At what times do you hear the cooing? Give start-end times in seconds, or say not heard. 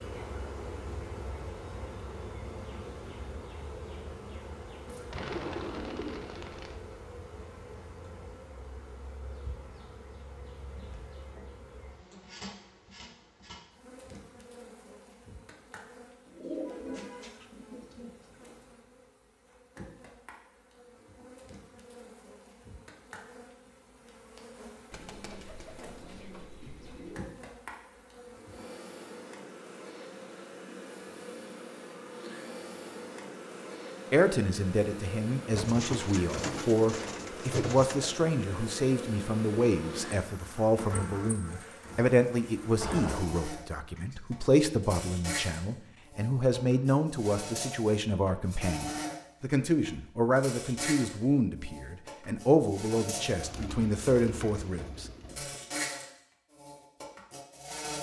5.1-6.8, 16.2-18.6, 24.9-27.2, 35.5-38.3, 53.4-55.4.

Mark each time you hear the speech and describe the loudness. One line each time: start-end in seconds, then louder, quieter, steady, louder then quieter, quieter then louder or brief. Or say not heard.
34.1-55.0 steady.